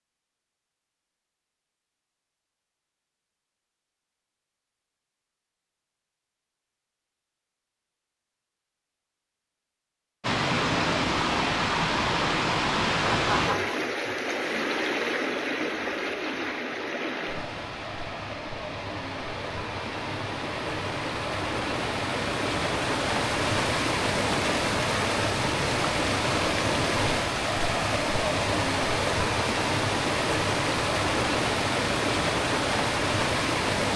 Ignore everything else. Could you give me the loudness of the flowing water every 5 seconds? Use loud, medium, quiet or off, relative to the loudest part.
off, off, loud, medium, loud, loud, loud.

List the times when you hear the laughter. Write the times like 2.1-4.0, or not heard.
13.1-13.8.